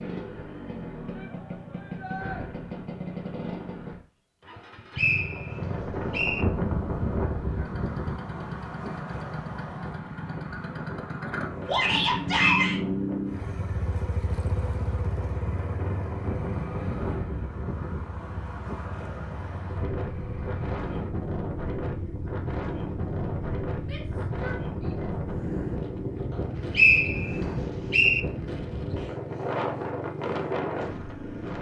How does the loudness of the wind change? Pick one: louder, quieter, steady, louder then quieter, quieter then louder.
quieter then louder.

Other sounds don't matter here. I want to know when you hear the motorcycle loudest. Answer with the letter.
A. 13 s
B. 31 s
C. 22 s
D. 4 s
A.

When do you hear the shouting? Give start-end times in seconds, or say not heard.
1.1-2.4, 11.7-12.8, 23.8-25.1.